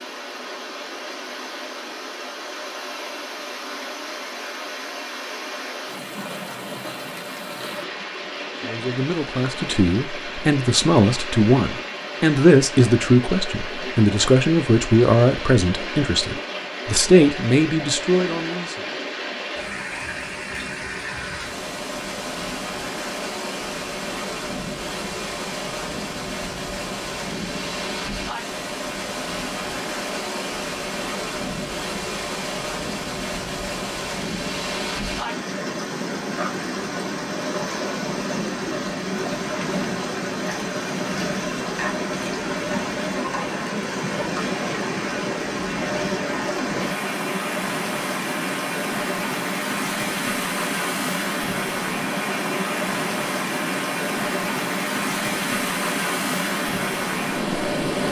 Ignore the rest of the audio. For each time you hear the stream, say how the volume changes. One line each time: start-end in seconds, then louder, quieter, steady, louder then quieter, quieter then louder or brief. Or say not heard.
0.0-58.0 louder.